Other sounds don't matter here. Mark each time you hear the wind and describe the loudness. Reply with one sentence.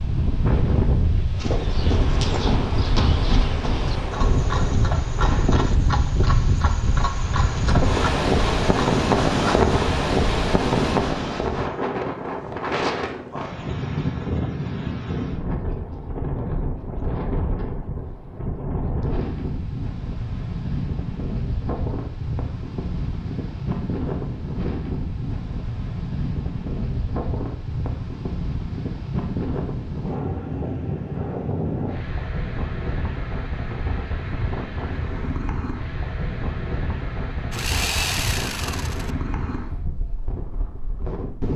The wind can be heard from 0.0 to 41.5 s, getting quieter.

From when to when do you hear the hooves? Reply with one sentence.
The hooves can be heard from 1.4 to 9.8 s.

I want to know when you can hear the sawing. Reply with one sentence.
The sawing can be heard from 37.5 to 39.1 s.